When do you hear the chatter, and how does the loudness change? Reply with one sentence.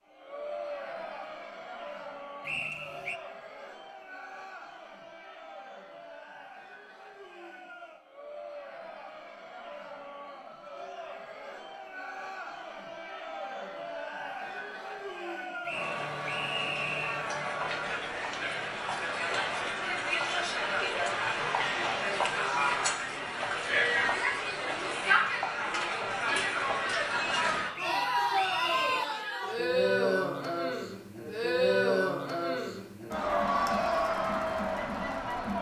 The chatter can be heard from 0.1 to 35.5 s, getting louder.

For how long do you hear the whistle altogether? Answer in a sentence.
The whistle can be heard for 4 seconds in total.